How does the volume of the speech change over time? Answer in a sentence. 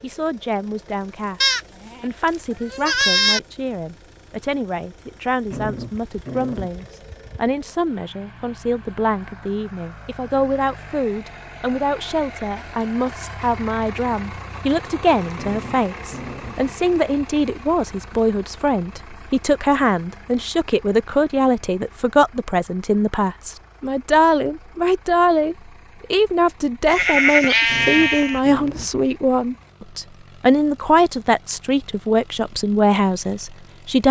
The loudness of the speech goes up.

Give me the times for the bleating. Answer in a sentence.
The bleating can be heard from 1.4 to 3.4 s and from 26.9 to 28.9 s.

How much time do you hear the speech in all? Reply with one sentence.
The speech can be heard for 34 seconds in total.